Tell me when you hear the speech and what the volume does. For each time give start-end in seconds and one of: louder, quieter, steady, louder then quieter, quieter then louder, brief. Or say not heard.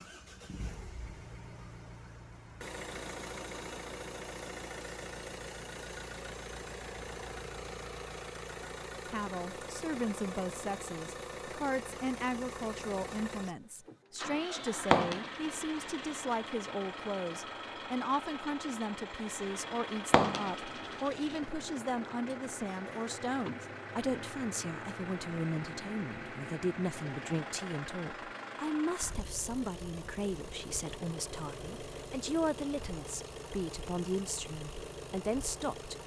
9.1-36.0 steady.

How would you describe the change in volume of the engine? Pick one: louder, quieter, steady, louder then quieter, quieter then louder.
steady.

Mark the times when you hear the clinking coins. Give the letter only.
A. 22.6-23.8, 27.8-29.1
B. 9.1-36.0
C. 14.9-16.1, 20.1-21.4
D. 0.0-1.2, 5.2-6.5
C.